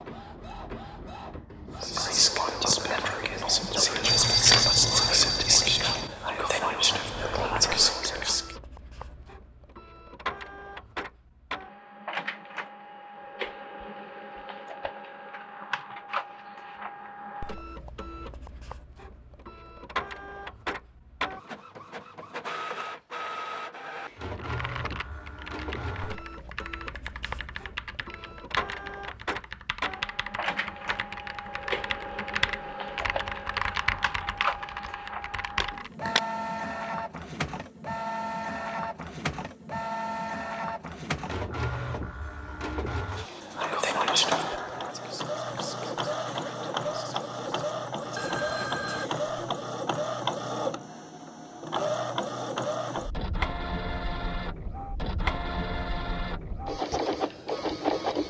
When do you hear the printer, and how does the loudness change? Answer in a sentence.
The printer can be heard from 0.0 to 58.2 s, getting louder.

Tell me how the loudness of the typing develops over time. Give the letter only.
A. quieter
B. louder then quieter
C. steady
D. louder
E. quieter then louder
D.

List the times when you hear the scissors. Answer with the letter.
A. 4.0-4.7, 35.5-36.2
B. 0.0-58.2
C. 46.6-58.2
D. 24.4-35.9
A.